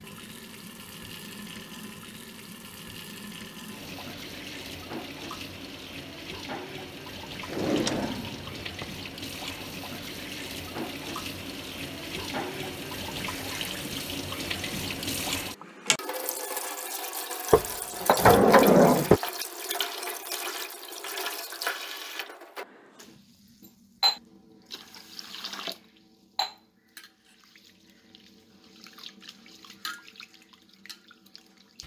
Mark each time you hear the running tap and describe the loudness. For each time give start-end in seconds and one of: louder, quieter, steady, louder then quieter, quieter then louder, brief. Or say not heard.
0.0-31.8 louder then quieter.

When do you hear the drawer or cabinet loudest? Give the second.
19 s.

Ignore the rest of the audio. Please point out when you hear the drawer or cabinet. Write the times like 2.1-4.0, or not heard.
7.5-8.8, 17.5-19.2.